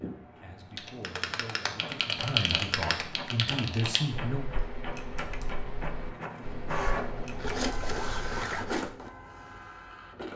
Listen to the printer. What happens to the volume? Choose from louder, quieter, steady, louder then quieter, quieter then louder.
louder.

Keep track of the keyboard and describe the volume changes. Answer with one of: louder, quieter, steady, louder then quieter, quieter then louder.
quieter.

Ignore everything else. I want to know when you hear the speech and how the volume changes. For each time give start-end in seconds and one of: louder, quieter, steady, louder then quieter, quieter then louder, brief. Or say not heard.
0.0-4.5 louder.